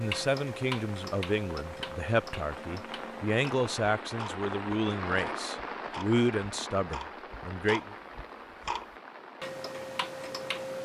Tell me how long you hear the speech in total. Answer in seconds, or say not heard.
8 s.